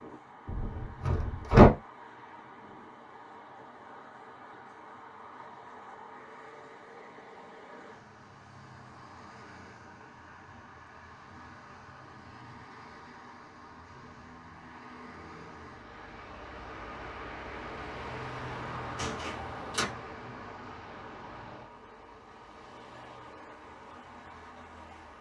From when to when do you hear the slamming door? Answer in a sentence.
The slamming door can be heard from 0.5 to 1.7 s and from 18.9 to 19.9 s.